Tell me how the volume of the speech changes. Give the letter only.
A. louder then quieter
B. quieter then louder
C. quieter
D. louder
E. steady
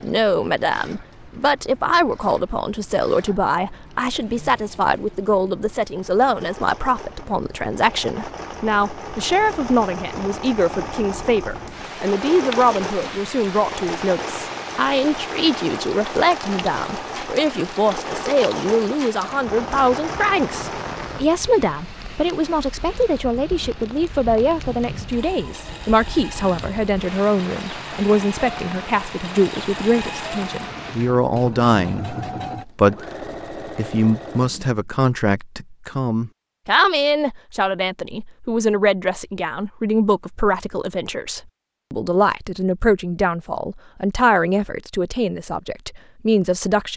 E.